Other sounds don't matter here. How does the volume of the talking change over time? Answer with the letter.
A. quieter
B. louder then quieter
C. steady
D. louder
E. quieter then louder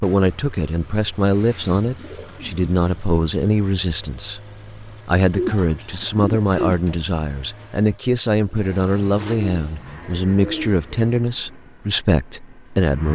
C.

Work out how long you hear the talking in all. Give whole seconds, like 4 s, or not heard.
13 s.